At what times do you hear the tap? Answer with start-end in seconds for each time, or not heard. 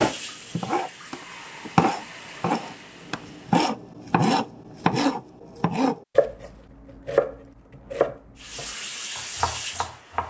0.0-3.7, 8.3-10.2.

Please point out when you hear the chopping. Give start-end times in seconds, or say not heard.
0.0-10.2.